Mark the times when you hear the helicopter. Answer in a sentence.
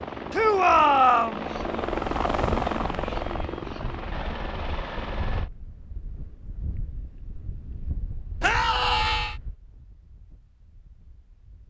The helicopter can be heard from 0.0 to 5.5 s.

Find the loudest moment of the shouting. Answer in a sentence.
The loudest moment of the shouting is at 1 second.